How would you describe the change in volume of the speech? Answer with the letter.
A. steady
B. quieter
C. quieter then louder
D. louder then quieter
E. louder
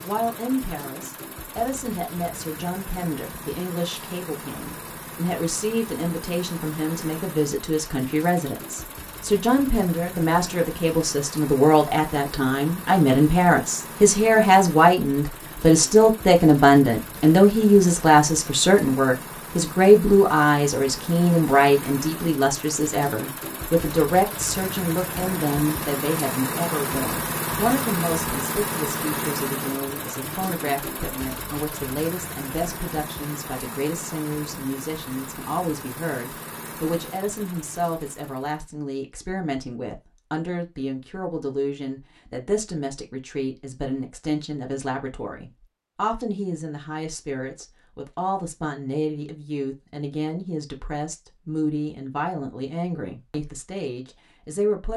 D.